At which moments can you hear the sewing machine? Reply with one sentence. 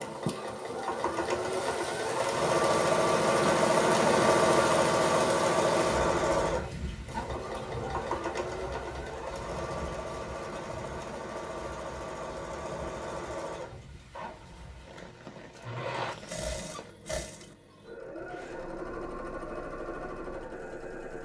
You can hear the sewing machine from 0.0 to 21.2 s.